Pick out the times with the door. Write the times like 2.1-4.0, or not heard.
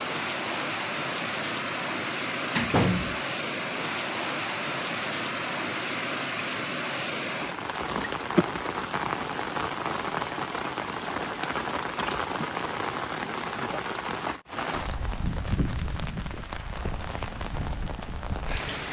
2.0-3.2.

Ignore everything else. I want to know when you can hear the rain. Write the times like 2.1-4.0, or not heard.
0.0-18.8.